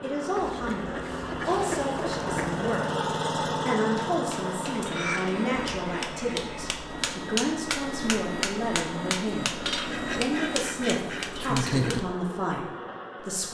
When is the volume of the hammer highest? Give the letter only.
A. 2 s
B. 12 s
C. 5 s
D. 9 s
B.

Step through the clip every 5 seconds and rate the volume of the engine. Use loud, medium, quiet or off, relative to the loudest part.
loud, medium, medium.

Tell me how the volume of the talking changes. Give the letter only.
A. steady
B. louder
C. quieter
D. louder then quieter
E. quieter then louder
A.